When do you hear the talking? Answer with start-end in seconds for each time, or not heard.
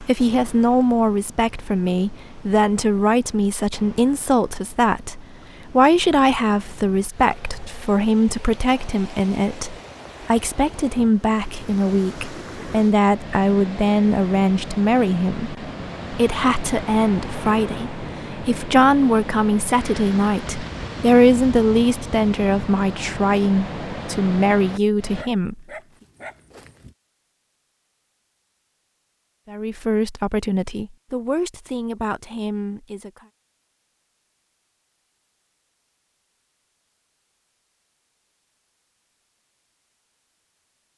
0.0-25.6, 29.5-33.2.